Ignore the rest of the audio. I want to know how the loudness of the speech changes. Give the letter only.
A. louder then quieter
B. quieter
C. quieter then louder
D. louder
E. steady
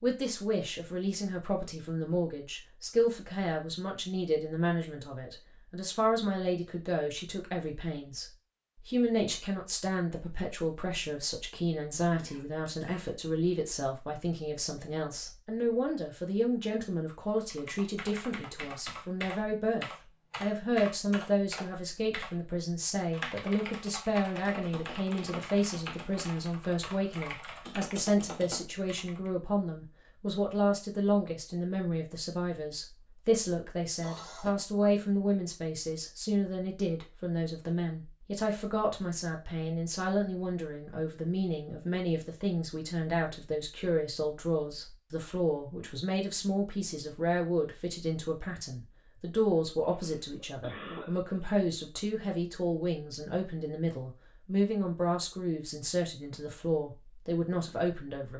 E.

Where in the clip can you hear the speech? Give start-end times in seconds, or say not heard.
0.0-58.3.